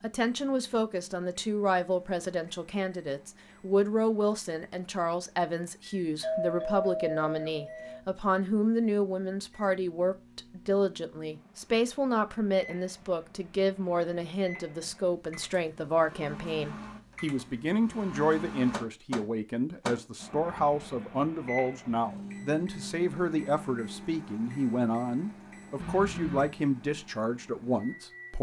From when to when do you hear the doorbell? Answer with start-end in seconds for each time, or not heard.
6.2-8.0, 25.8-26.5.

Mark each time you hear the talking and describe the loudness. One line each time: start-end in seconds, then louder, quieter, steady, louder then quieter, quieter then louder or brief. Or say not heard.
0.0-28.3 steady.